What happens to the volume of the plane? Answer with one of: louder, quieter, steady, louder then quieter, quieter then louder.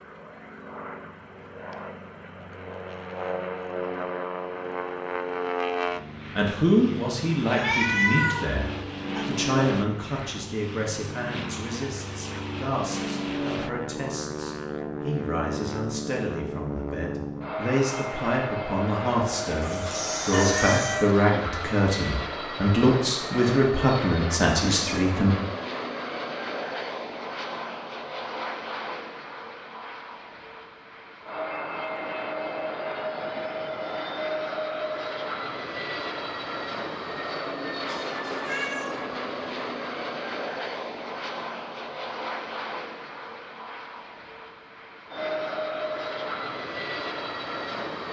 steady.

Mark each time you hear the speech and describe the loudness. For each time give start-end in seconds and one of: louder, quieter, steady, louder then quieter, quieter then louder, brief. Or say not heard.
6.3-25.4 quieter then louder.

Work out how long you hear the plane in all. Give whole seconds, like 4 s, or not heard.
48 s.